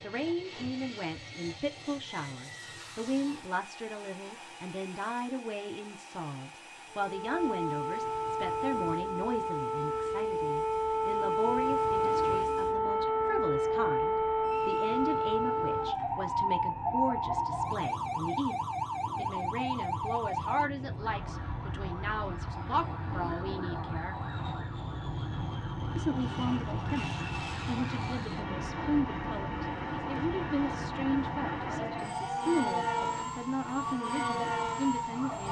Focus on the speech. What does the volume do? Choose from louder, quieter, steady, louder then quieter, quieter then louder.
steady.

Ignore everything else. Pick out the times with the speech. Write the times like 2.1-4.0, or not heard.
0.0-18.6, 19.1-24.2, 25.9-35.4.